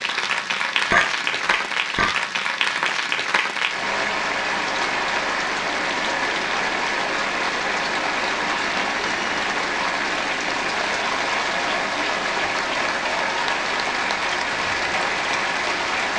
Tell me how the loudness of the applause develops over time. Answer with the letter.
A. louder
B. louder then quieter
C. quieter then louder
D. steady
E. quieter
D.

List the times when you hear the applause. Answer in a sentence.
The applause can be heard from 0.0 to 16.1 s.